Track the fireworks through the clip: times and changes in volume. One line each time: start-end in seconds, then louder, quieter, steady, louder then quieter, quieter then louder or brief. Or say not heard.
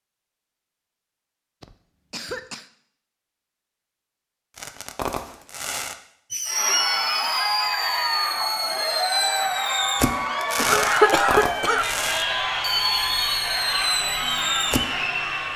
4.5-14.8 steady.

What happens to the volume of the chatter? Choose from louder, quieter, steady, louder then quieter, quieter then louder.
steady.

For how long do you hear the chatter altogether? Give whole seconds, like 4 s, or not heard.
9 s.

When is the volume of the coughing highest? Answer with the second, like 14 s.
11 s.